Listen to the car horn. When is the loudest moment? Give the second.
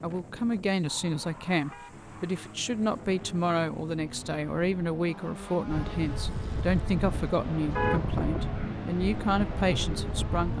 8 s.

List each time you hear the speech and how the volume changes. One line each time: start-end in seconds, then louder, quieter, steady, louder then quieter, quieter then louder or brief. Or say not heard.
0.0-10.5 steady.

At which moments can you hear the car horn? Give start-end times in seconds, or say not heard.
0.8-2.5, 7.7-8.9.